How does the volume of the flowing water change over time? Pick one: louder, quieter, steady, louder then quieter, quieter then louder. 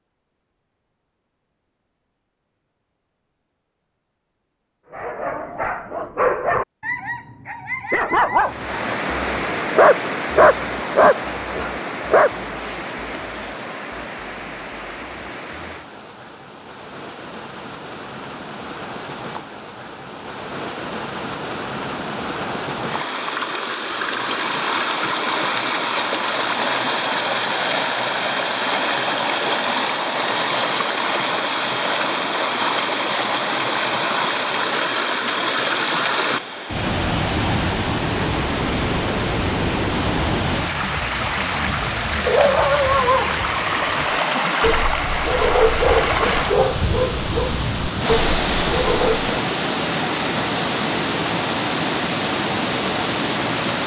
louder.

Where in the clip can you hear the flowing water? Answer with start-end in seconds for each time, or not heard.
8.3-53.8.